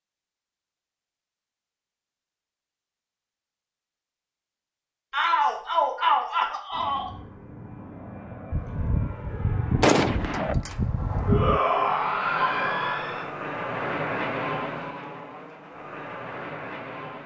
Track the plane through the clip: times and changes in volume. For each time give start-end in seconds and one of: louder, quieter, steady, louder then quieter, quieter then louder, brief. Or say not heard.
6.7-17.2 louder then quieter.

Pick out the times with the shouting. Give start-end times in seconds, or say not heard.
5.1-7.1, 11.2-13.2.